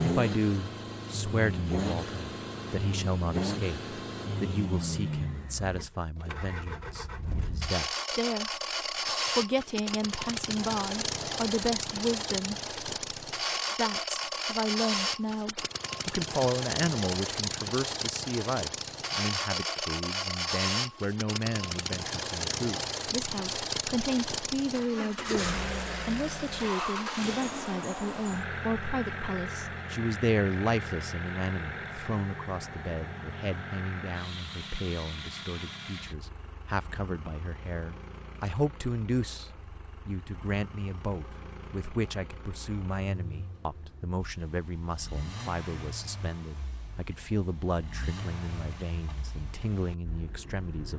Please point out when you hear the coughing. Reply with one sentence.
The coughing can't be heard in this clip.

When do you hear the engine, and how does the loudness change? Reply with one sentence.
The engine can be heard from 0.0 to 50.9 s, getting quieter.